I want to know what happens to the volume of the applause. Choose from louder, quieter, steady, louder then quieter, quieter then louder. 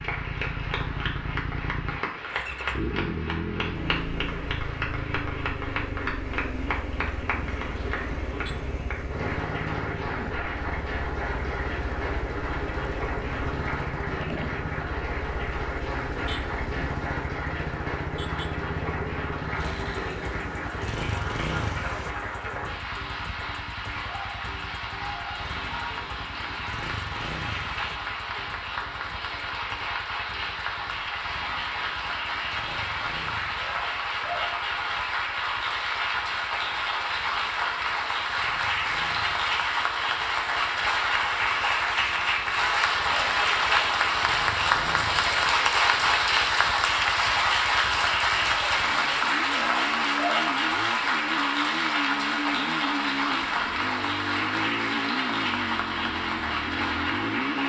louder.